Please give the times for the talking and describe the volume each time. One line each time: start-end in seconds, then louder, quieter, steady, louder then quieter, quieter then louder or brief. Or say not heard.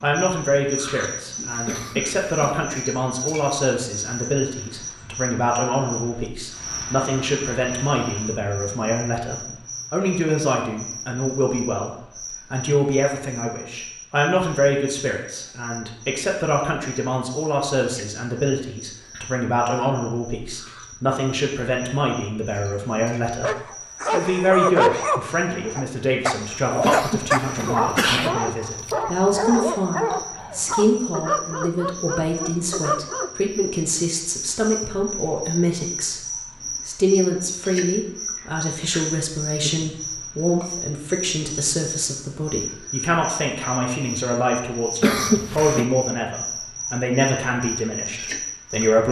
0.0-49.0 steady.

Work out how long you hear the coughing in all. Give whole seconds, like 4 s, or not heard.
3 s.